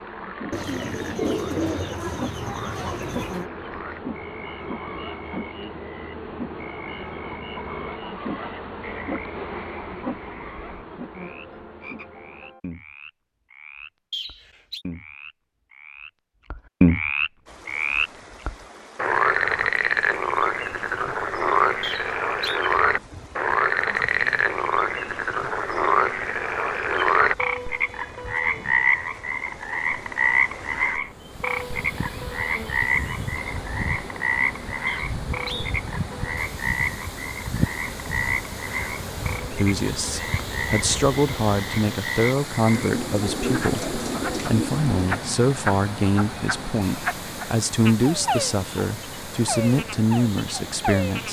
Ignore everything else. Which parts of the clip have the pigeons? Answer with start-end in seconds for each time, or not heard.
0.5-3.5, 42.7-45.2.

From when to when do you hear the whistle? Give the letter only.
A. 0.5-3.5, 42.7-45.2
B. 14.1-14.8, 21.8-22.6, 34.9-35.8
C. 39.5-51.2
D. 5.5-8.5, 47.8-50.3
B.